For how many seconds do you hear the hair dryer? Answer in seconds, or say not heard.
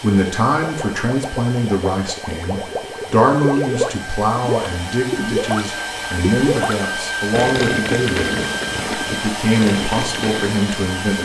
11 s.